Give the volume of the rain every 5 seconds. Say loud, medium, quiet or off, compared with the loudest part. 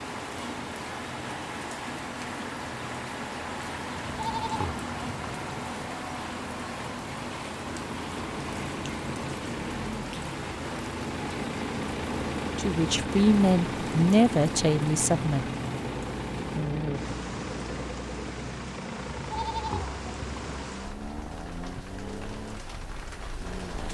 loud, loud, loud, loud, medium.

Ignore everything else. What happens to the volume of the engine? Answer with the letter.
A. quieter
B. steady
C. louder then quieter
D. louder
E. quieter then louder
C.